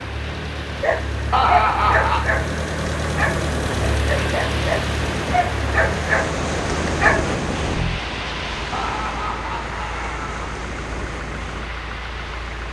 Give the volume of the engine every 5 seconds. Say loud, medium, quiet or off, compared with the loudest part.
loud, loud, medium.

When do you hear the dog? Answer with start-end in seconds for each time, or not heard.
0.8-7.3.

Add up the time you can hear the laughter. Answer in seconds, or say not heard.
3 s.